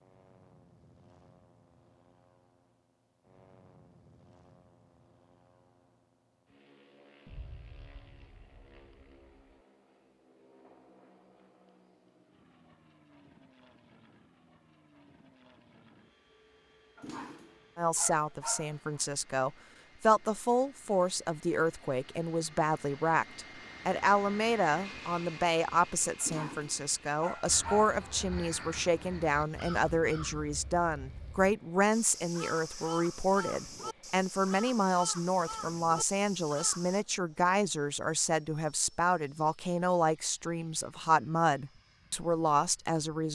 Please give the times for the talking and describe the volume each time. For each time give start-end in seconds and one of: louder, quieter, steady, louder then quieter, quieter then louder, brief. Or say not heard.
17.8-43.2 steady.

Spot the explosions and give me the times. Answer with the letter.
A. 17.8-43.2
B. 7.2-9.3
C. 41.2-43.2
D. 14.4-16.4
B.